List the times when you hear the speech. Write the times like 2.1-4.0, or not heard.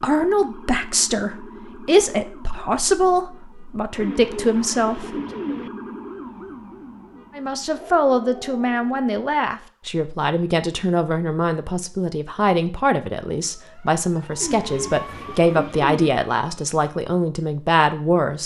0.0-5.2, 7.3-18.4.